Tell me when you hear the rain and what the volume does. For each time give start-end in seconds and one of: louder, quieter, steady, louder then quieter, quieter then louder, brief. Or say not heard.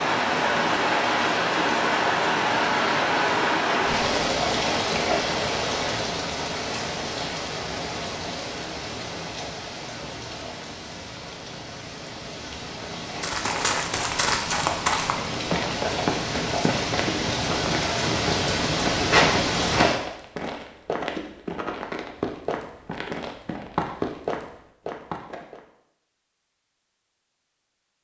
0.0-20.0 quieter then louder.